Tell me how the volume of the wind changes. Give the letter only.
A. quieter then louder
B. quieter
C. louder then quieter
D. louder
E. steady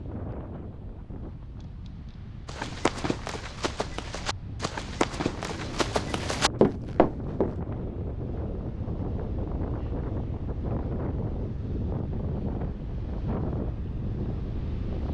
D.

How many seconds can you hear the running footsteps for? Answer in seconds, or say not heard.
5 s.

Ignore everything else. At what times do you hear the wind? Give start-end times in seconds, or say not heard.
0.0-15.0.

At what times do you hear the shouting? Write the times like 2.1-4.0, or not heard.
not heard.